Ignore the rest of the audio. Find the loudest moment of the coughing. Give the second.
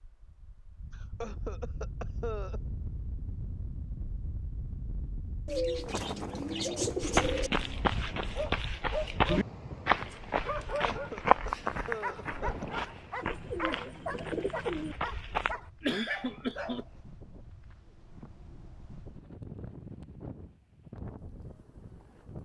16 s.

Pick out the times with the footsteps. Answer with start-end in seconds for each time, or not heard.
7.0-15.6.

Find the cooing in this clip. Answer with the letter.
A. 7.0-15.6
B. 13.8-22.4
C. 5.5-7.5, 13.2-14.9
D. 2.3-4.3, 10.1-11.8
C.